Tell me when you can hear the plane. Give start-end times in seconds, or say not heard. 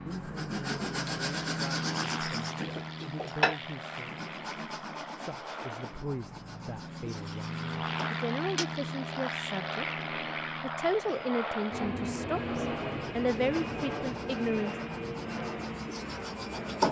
0.0-16.8.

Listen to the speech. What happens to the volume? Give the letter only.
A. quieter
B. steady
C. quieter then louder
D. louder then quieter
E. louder
E.